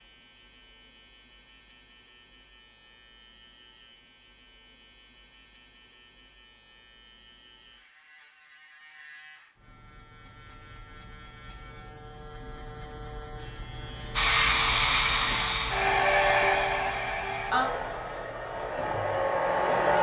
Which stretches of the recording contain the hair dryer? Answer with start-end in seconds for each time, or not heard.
14.2-19.9.